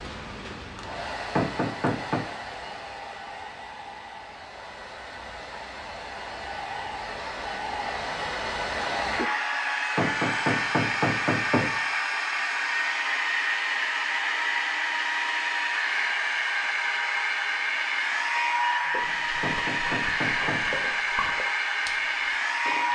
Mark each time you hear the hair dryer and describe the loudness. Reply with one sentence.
You can hear the hair dryer from 0.0 to 22.9 s, getting louder.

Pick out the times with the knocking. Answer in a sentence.
The knocking can be heard from 1.4 to 2.3 s, from 9.9 to 11.8 s and from 19.4 to 20.8 s.